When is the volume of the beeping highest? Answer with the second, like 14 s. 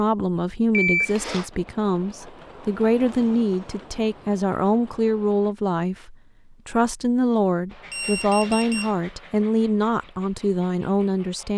1 s.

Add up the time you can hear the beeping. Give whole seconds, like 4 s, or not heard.
2 s.